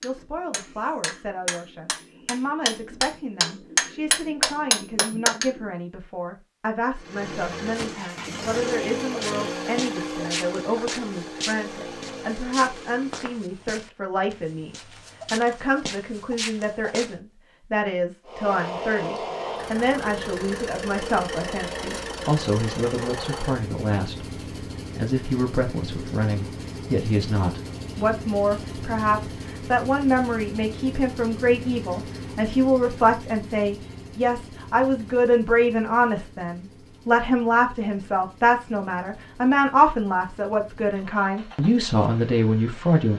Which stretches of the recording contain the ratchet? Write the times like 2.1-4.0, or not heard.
not heard.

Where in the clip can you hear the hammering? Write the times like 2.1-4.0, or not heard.
0.0-5.6.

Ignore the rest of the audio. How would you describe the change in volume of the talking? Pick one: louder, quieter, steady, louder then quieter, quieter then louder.
louder.